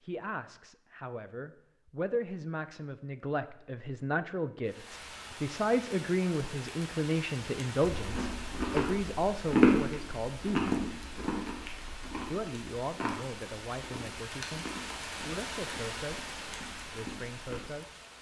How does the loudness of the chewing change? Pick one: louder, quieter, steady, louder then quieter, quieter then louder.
quieter.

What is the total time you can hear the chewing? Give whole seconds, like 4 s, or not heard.
10 s.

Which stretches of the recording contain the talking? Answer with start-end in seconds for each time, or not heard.
0.0-10.8, 12.1-17.9.